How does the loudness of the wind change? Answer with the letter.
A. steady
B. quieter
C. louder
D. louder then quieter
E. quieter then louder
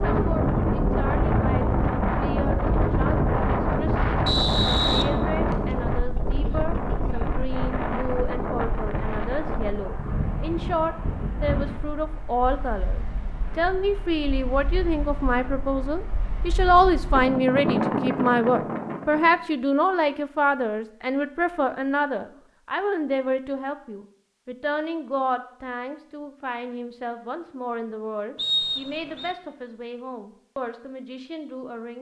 E.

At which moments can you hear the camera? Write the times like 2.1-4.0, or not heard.
not heard.